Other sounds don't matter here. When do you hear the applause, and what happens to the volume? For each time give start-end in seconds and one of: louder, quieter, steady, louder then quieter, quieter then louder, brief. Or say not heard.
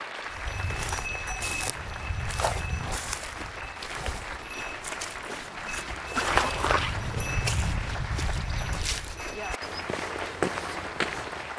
0.0-11.5 steady.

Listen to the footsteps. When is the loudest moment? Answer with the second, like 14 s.
6 s.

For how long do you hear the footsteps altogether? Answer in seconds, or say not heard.
11 s.